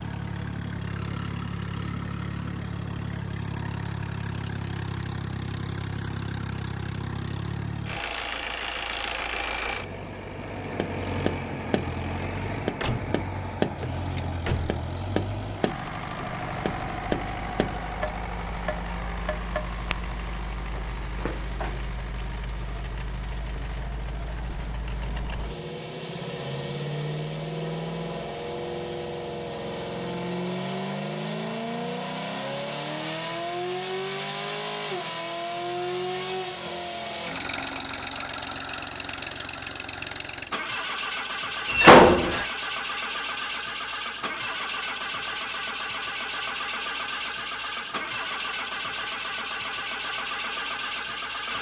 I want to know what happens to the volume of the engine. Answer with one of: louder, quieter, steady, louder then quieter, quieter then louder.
steady.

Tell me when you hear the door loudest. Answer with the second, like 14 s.
42 s.